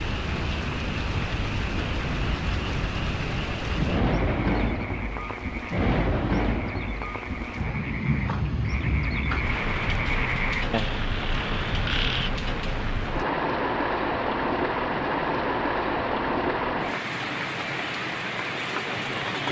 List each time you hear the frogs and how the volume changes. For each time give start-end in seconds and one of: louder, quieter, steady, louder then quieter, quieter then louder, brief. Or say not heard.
0.0-12.3 louder.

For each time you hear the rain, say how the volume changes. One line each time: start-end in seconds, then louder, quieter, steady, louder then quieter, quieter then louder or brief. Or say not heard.
0.0-19.4 steady.